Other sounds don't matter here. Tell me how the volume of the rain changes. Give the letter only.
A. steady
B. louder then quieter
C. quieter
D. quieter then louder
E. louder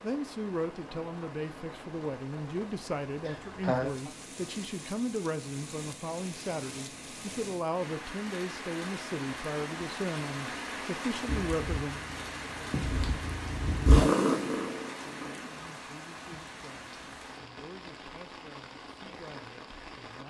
B.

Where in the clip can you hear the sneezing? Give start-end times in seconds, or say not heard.
3.2-4.0.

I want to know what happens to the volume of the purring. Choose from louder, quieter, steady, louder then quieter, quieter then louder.
louder then quieter.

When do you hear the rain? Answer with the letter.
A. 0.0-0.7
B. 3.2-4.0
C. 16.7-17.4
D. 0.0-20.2
D.